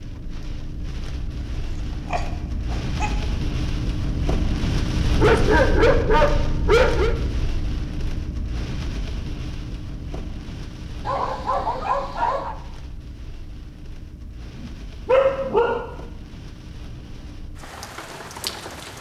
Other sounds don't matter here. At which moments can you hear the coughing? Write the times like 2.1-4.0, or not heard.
not heard.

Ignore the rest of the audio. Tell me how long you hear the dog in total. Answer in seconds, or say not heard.
6 s.